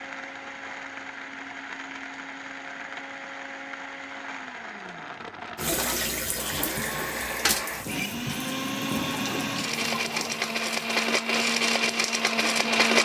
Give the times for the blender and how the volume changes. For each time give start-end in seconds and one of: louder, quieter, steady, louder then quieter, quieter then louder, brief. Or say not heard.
0.0-13.0 louder.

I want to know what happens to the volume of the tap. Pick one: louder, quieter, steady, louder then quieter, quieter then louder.
quieter.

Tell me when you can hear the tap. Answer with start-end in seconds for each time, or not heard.
5.5-12.9.